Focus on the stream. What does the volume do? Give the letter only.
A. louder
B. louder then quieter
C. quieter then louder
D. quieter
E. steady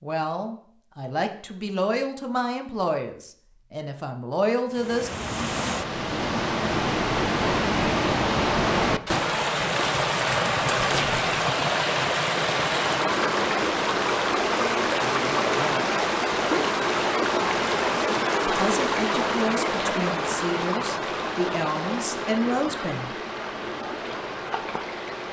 D.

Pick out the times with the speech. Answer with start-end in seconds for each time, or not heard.
0.0-5.1, 18.4-23.1.